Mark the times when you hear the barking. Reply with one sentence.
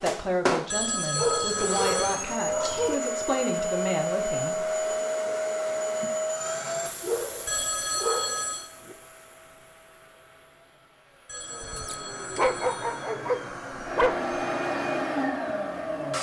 You can hear the barking from 1.1 to 3.0 s, from 7.0 to 8.9 s and from 11.6 to 14.2 s.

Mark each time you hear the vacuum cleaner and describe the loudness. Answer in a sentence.
The vacuum cleaner can be heard from 0.0 to 16.1 s, getting quieter then louder.